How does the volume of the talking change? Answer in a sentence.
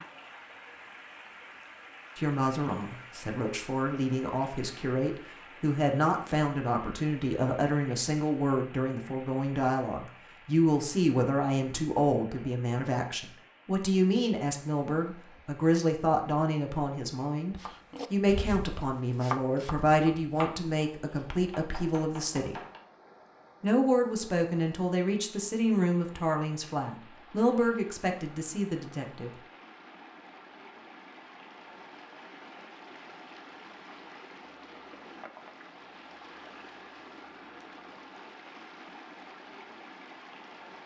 The volume of the talking stays about the same.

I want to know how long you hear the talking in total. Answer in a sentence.
You can hear the talking for 26 seconds altogether.